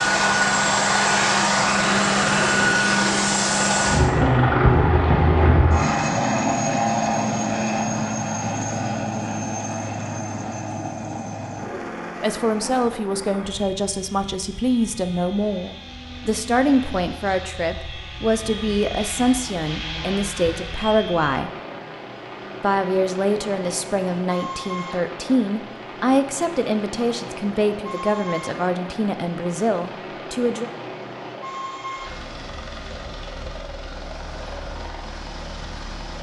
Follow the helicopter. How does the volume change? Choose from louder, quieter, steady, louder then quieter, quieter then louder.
quieter.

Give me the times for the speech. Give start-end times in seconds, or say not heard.
12.2-21.5, 22.6-30.7.